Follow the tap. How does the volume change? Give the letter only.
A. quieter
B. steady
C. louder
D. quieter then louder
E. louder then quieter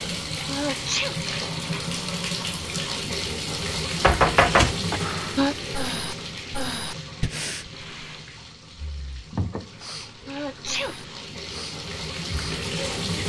D.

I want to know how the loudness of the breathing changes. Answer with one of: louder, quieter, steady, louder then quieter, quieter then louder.
quieter then louder.